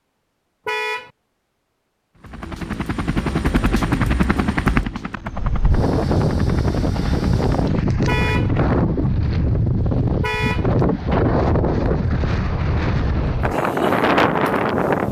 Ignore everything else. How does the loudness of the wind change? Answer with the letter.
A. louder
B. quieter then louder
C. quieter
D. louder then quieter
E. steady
E.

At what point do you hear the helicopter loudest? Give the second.
4 s.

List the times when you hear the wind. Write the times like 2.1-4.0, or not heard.
5.3-15.0.